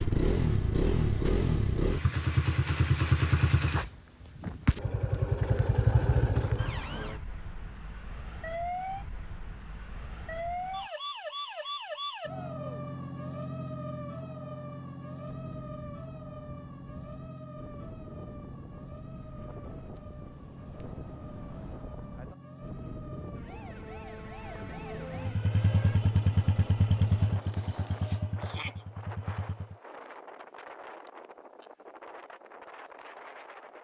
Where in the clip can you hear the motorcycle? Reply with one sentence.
The motorcycle can be heard from 0.0 to 6.8 s and from 25.1 to 29.8 s.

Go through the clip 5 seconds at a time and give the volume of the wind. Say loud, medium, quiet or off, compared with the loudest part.
off, off, off, loud, loud, loud, loud.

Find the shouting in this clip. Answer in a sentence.
You can hear the shouting from 12.2 to 12.7 s and from 28.4 to 28.9 s.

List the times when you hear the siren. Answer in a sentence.
The siren can be heard from 6.5 to 26.0 s.